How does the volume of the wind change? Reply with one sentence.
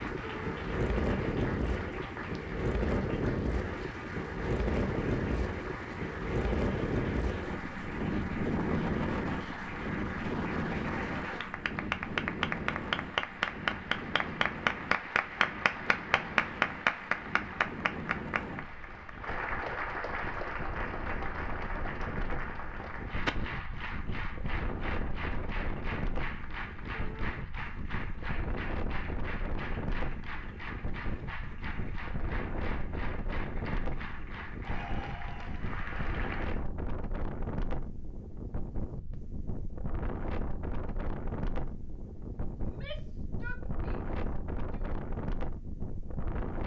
The loudness of the wind goes down.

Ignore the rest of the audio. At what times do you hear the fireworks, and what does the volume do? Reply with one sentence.
The fireworks can't be heard in this clip.